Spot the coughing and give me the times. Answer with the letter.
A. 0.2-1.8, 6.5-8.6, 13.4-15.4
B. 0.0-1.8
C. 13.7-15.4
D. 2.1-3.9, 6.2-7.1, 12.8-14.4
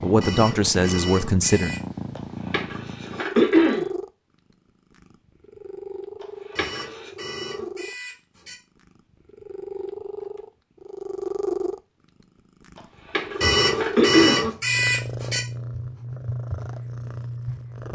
D.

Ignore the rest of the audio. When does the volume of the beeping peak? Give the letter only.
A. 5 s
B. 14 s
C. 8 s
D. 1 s
B.